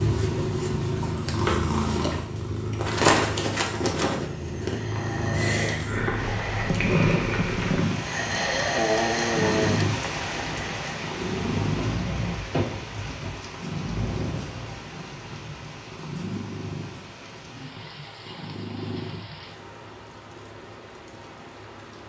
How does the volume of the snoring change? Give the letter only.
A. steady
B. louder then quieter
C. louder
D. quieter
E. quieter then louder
B.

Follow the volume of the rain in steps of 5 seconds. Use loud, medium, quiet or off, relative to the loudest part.
off, loud, loud, medium, medium.